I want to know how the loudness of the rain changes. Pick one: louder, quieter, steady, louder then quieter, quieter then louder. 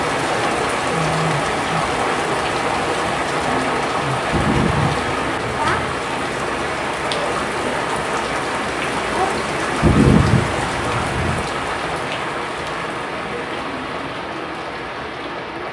quieter.